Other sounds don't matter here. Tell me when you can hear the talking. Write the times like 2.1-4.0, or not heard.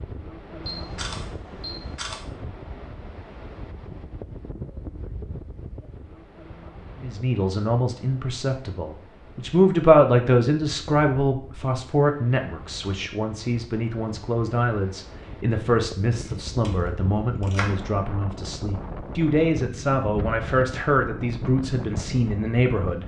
7.0-23.0.